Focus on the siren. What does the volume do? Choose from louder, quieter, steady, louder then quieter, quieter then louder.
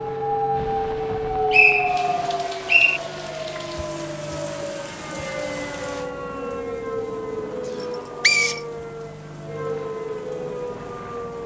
quieter.